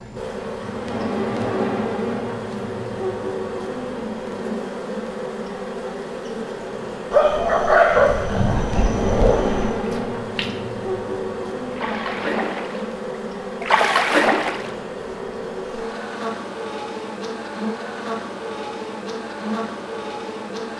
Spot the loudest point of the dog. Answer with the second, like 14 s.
8 s.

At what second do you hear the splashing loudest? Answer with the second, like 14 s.
14 s.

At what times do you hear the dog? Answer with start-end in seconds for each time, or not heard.
7.1-9.8.